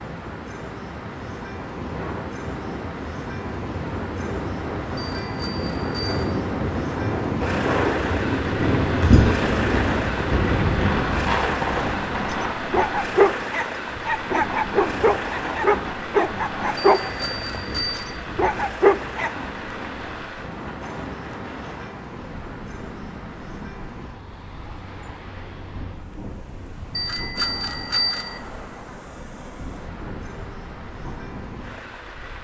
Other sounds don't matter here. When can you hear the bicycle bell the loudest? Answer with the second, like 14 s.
28 s.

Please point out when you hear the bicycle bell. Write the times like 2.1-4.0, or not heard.
5.0-6.2, 16.8-18.2, 26.9-28.4.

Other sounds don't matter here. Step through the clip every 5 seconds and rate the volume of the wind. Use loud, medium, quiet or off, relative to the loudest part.
medium, loud, loud, medium, quiet, quiet, quiet.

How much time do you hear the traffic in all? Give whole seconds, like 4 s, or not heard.
32 s.